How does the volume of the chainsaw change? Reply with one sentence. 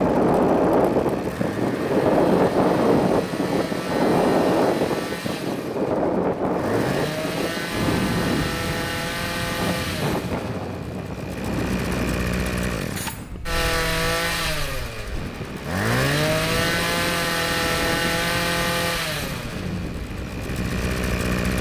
The volume of the chainsaw goes up.